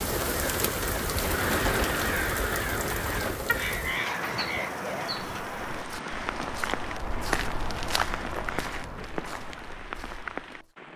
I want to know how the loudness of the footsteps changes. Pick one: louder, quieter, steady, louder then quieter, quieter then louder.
louder then quieter.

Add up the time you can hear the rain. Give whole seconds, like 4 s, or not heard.
11 s.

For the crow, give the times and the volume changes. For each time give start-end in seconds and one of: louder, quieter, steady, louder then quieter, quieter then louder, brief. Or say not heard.
0.1-9.7 quieter.